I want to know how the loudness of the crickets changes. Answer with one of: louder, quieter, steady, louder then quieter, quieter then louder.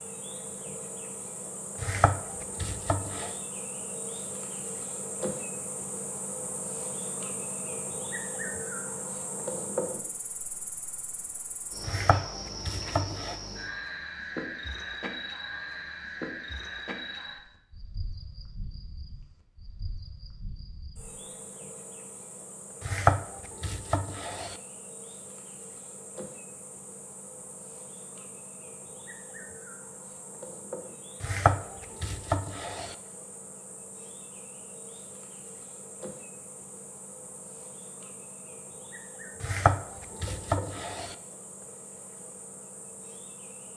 quieter.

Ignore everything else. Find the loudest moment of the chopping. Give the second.
23 s.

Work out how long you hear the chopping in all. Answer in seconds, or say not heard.
8 s.